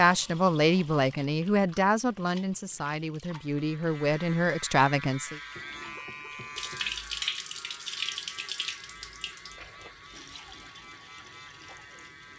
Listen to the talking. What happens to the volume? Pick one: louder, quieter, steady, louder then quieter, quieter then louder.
quieter then louder.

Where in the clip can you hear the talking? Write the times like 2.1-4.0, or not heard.
0.0-5.4.